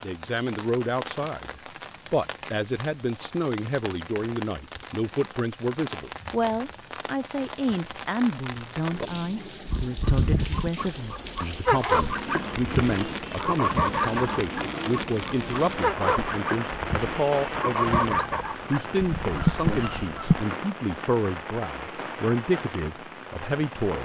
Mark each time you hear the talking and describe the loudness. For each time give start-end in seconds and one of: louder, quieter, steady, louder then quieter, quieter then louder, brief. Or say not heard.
0.0-23.9 steady.